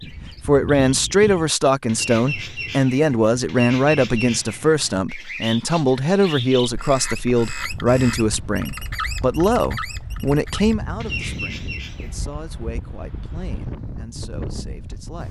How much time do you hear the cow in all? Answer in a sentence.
The cow can't be heard in this clip.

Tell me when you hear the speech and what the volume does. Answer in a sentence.
You can hear the speech from 0.1 to 15.2 s, getting quieter.